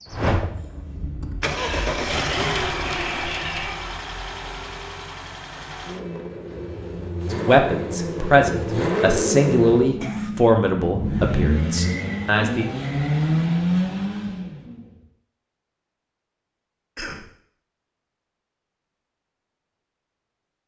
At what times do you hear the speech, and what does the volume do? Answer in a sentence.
The speech can be heard from 7.3 to 12.7 s, getting quieter.